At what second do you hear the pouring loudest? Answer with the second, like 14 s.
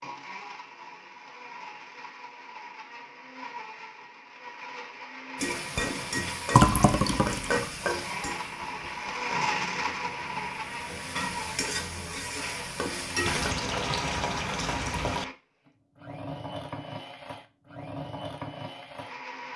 7 s.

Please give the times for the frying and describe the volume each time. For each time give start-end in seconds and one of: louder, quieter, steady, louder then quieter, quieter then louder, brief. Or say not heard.
5.3-13.6 quieter then louder.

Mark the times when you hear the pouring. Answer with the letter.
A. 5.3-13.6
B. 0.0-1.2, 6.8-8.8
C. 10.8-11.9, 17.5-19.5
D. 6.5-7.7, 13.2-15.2
D.